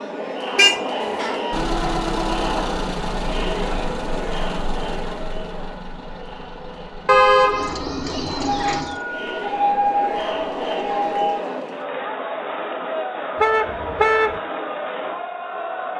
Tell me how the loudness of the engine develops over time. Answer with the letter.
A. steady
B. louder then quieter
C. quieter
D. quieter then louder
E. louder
C.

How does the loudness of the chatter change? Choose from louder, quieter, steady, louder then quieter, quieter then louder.
quieter then louder.